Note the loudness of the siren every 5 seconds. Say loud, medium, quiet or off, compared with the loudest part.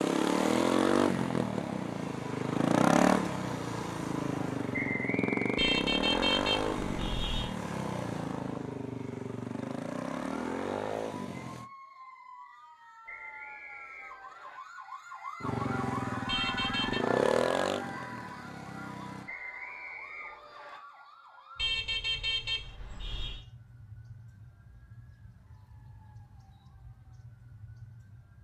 off, off, medium, loud, quiet, quiet.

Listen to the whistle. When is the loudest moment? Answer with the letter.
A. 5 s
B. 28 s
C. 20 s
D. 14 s
A.